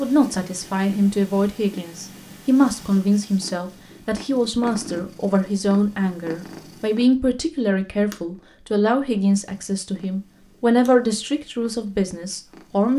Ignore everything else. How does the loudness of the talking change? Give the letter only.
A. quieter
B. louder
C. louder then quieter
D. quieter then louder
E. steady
E.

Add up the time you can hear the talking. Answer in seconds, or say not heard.
13 s.